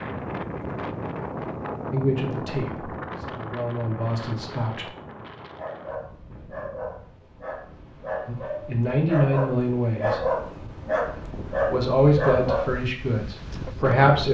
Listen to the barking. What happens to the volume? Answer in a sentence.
The volume of the barking goes up.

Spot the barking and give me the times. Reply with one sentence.
The barking can be heard from 5.5 to 12.8 s.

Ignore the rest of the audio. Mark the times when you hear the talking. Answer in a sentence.
The talking can be heard from 1.9 to 4.8 s, from 8.2 to 10.2 s and from 11.6 to 14.2 s.